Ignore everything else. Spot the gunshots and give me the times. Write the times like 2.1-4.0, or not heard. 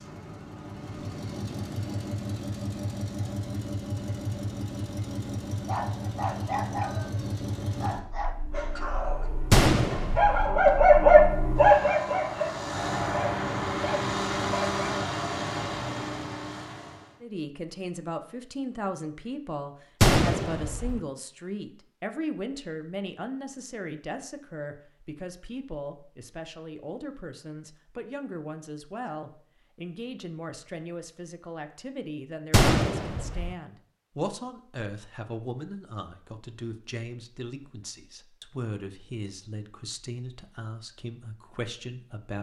9.5-10.5, 20.0-21.0, 32.5-33.5.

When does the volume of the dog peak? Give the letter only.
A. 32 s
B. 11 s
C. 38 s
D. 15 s
B.